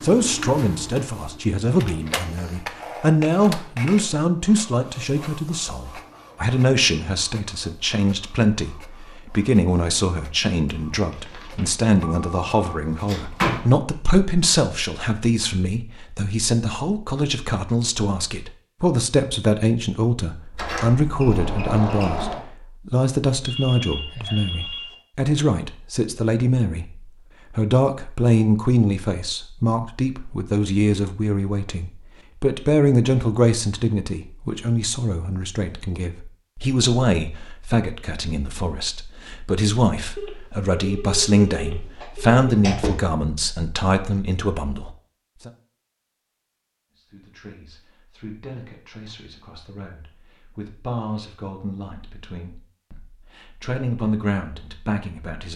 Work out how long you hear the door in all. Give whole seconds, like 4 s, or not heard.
4 s.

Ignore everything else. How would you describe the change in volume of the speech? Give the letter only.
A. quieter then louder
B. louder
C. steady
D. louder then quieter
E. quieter
E.